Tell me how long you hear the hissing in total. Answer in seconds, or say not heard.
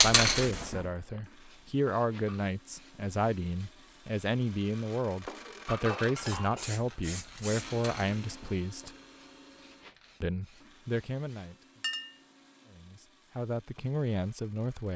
9 s.